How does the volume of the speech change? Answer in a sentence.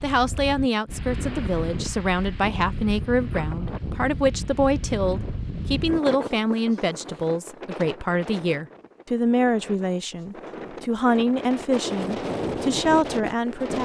The volume of the speech stays about the same.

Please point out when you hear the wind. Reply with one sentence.
You can hear the wind from 0.0 to 13.8 s.